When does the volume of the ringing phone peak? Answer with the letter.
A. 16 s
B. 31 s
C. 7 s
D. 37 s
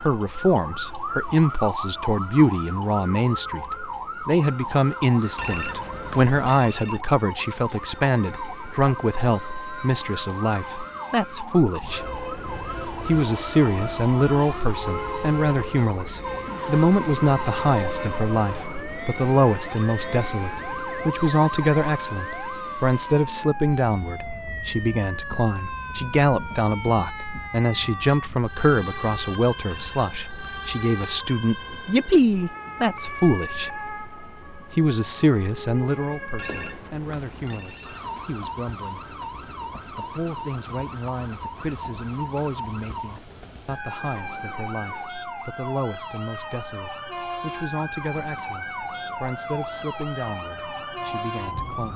C.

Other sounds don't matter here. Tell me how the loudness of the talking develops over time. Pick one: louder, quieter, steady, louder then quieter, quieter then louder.
quieter.